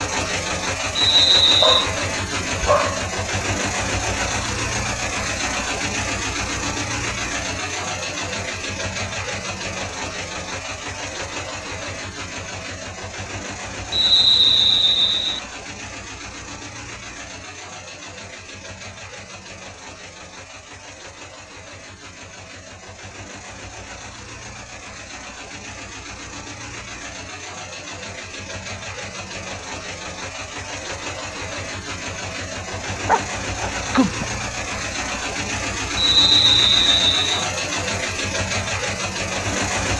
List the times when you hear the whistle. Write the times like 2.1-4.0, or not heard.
0.9-1.9, 13.9-15.4, 36.0-37.5.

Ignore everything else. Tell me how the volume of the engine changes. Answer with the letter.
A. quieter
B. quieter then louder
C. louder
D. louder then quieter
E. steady
B.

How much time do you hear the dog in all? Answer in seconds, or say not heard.
3 s.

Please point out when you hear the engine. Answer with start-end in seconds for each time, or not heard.
0.0-39.9.